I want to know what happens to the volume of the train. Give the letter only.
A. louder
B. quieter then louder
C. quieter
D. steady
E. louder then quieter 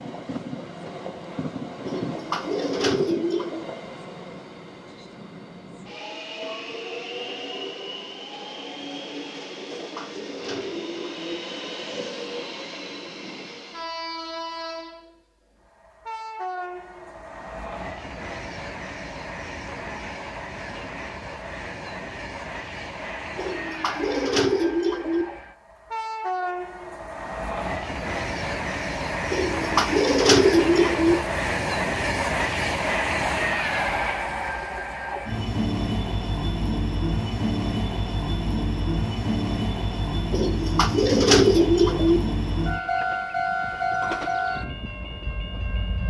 A.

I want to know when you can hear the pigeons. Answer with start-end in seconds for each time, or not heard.
1.9-3.6, 9.8-11.3, 23.4-25.2, 29.3-31.1, 40.3-42.2.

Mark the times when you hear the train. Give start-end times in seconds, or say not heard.
0.0-46.0.